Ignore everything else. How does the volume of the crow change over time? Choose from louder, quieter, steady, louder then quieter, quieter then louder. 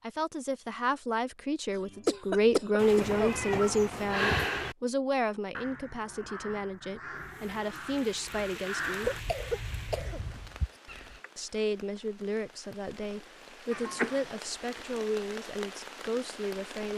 louder then quieter.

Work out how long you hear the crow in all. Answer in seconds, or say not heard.
6 s.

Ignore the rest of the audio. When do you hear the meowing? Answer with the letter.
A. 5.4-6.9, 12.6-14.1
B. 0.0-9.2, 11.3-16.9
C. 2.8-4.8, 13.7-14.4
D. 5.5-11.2
C.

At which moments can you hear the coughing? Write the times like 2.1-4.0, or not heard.
1.9-3.4, 9.0-10.5.